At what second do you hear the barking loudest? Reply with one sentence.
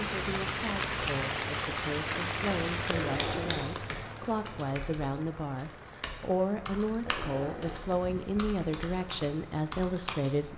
The loudest moment of the barking is at 3 seconds.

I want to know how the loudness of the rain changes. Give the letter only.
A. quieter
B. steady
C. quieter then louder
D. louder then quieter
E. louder
A.